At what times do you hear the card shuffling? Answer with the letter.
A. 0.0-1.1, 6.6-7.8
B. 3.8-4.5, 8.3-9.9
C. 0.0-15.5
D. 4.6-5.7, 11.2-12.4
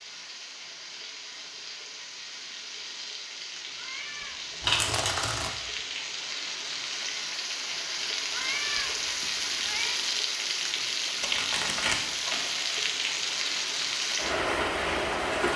D.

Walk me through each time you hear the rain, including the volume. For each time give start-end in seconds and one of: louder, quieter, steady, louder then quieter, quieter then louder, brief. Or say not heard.
0.0-15.5 louder.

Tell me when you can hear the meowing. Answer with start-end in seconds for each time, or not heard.
3.8-4.5, 8.3-9.9.